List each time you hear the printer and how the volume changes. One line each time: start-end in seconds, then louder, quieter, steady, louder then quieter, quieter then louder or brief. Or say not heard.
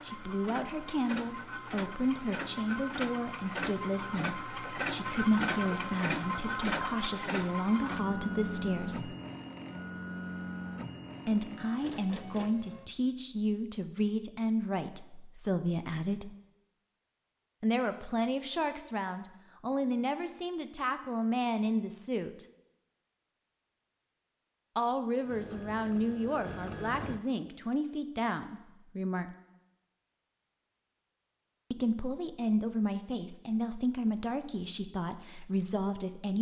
0.0-12.9 louder then quieter
25.2-27.2 brief.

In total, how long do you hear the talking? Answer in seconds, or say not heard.
28 s.